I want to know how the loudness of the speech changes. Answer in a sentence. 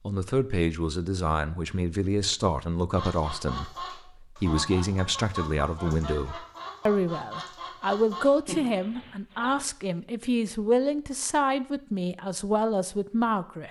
The volume of the speech stays about the same.